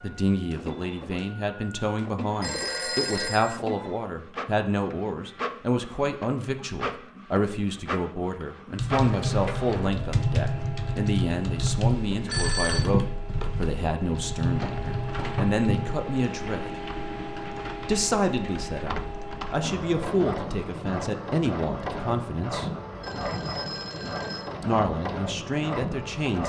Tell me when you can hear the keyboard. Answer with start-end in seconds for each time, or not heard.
8.8-15.9.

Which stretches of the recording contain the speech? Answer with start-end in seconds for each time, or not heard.
0.0-16.8, 17.8-22.7, 24.6-26.4.